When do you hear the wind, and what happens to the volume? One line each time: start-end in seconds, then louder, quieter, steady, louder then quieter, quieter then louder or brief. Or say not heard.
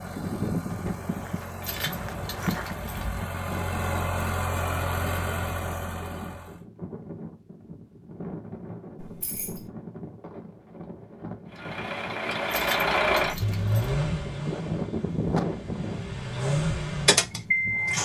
0.0-18.0 quieter then louder.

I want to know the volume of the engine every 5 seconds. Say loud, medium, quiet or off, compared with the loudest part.
medium, medium, loud, loud.